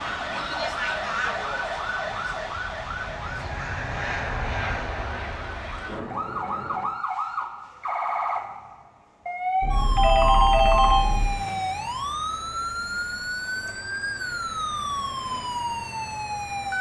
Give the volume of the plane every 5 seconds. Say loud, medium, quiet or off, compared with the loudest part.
loud, loud, off, off.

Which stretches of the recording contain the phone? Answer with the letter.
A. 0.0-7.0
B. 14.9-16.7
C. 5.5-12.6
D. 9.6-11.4
D.